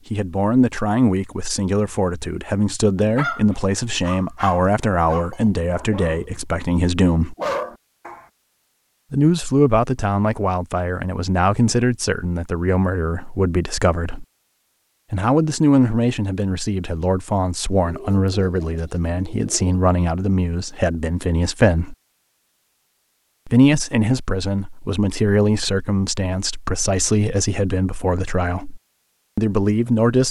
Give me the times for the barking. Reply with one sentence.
The barking can be heard from 3.0 to 6.4 s and from 7.3 to 8.2 s.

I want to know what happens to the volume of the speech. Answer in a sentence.
The volume of the speech stays about the same.